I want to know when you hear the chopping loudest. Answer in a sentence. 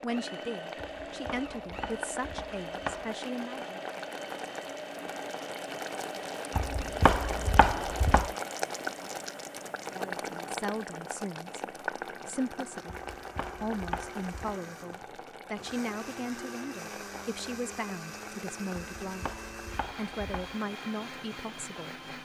The volume of the chopping peaks at 7 seconds.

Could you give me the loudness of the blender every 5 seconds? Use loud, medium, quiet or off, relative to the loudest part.
loud, loud, medium, loud, loud.